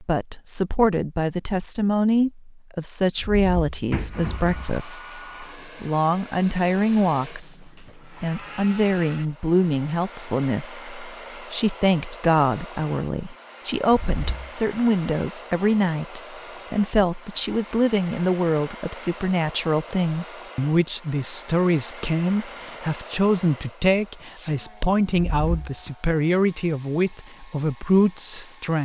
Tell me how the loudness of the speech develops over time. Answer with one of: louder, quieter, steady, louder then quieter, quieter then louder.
steady.